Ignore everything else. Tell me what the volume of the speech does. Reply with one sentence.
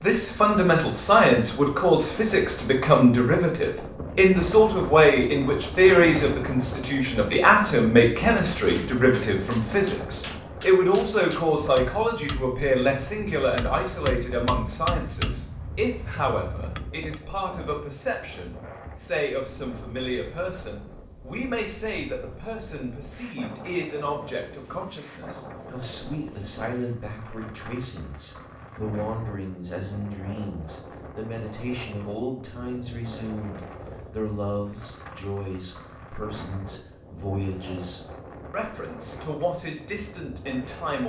The volume of the speech goes down.